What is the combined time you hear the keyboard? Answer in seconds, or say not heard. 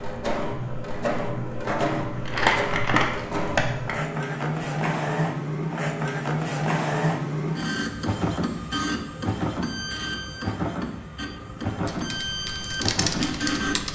2 s.